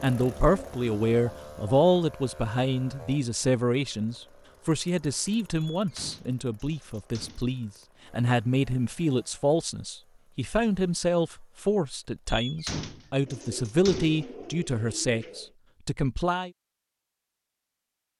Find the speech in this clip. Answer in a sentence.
You can hear the speech from 0.0 to 16.5 s.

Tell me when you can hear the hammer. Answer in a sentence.
The hammer can't be heard in this clip.